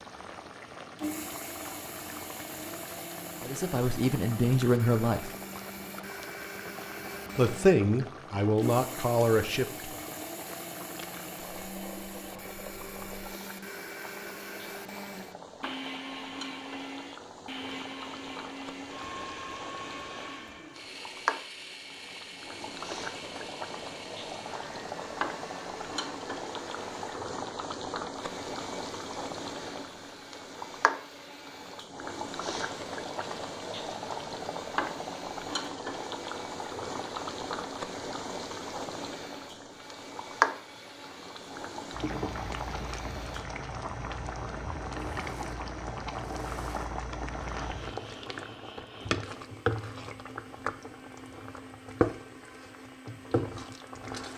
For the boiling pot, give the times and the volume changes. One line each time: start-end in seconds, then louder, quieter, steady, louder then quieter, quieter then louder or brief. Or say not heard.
0.0-54.3 louder.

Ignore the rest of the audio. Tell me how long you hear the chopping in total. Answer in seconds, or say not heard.
not heard.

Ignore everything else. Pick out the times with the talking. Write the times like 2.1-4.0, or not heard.
3.4-5.3, 7.3-9.9.